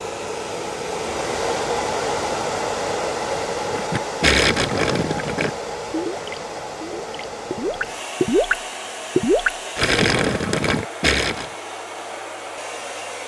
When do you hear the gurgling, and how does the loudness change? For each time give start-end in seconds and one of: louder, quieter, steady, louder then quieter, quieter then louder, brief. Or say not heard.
3.6-11.4 quieter then louder.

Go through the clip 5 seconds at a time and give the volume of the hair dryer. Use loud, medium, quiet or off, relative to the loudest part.
loud, medium, medium.